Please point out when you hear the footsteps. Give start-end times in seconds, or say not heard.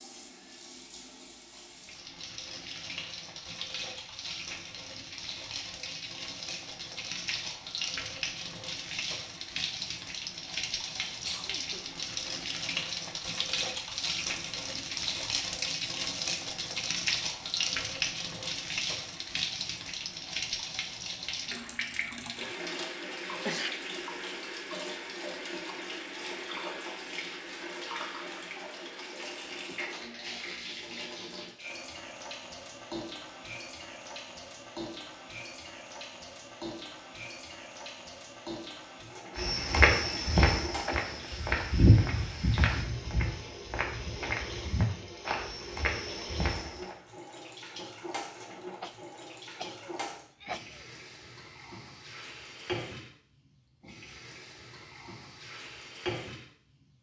39.4-47.0.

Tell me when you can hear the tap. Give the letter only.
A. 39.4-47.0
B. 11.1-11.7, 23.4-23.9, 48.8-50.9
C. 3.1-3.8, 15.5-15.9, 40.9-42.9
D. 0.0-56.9
D.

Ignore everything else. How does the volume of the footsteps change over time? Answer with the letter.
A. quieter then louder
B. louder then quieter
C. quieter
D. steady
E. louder
C.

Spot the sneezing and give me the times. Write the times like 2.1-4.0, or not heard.
11.1-11.7, 23.4-23.9, 48.8-50.9.